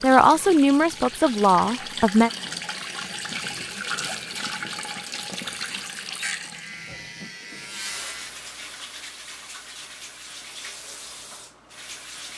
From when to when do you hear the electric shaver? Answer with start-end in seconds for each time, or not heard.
6.5-8.3.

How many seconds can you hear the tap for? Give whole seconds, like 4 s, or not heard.
12 s.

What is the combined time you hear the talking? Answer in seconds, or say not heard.
2 s.